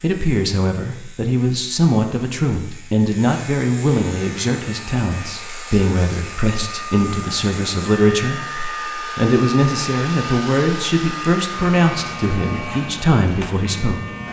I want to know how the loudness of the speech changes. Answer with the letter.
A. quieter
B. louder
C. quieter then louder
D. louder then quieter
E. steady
E.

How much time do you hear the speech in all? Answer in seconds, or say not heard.
13 s.